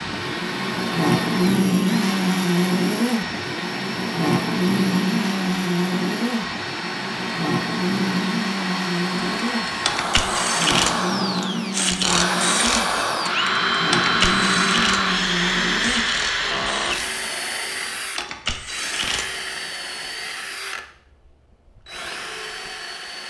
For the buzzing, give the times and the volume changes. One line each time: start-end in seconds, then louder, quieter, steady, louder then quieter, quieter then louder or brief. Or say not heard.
0.0-16.1 quieter.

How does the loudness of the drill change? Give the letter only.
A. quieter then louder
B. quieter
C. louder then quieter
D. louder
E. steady
C.